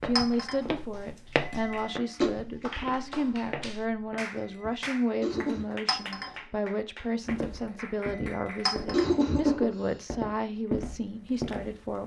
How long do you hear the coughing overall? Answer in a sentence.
The coughing can be heard for 4 seconds in total.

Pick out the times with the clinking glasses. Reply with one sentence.
The clinking glasses can be heard from 0.1 to 0.6 s, from 5.8 to 6.3 s and from 8.7 to 9.1 s.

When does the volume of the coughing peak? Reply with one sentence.
The loudest moment of the coughing is at 9 seconds.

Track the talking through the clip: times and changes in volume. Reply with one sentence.
The talking can be heard from 0.0 to 12.0 s, at a steady volume.